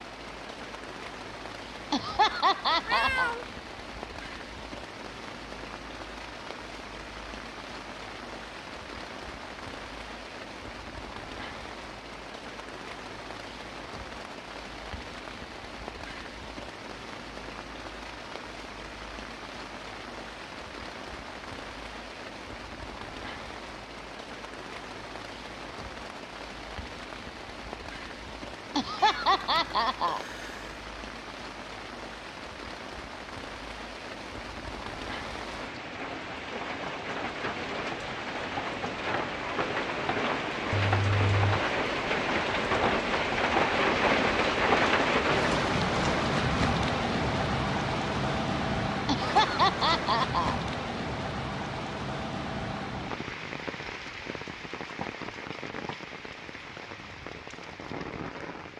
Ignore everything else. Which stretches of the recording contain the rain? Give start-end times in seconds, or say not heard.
0.0-58.7.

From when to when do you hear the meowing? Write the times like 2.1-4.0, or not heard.
2.7-3.5, 28.9-30.8, 40.7-41.6.